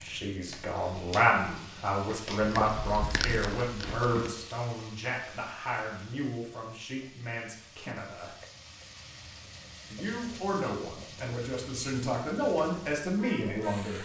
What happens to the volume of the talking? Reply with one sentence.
The loudness of the talking goes down, then up.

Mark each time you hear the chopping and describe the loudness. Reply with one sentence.
The chopping can't be heard in this clip.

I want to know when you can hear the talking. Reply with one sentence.
You can hear the talking from 0.0 to 8.3 s and from 9.9 to 13.9 s.